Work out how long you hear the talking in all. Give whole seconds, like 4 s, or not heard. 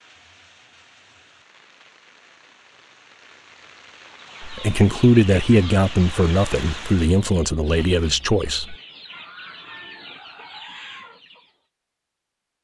4 s.